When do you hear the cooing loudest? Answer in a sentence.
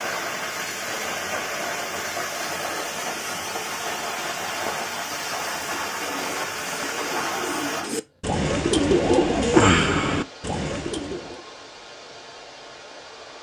The loudest moment of the cooing is at 10 seconds.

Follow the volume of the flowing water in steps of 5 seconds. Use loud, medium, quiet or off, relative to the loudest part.
loud, loud, quiet.